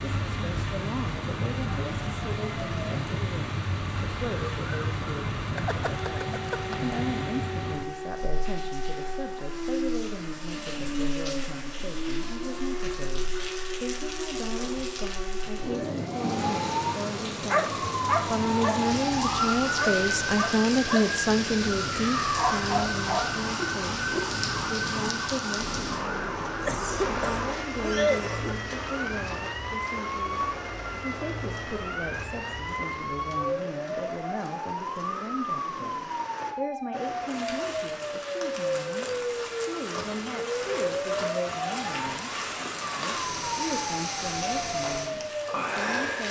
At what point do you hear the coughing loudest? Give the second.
28 s.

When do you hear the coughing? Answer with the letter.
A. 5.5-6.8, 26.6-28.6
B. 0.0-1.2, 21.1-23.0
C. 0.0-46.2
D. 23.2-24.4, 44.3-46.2
A.